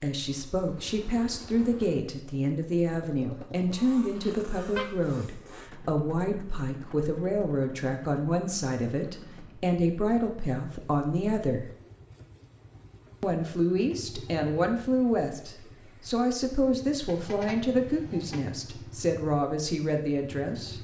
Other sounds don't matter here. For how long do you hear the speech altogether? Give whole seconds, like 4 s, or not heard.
19 s.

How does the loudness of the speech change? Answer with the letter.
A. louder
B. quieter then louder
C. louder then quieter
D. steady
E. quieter
D.